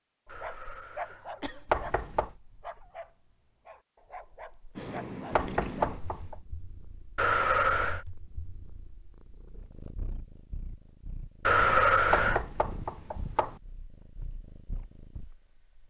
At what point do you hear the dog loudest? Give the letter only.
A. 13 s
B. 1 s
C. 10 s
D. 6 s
B.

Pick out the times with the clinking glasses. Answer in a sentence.
The clinking glasses can't be heard in this clip.